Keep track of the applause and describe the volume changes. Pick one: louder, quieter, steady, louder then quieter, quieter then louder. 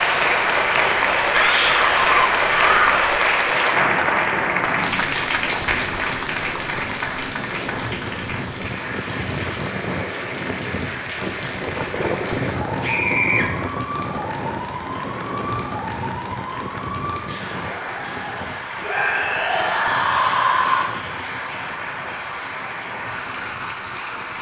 quieter.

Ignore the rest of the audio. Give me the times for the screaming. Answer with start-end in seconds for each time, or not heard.
1.3-3.1, 12.8-13.4, 18.8-20.9.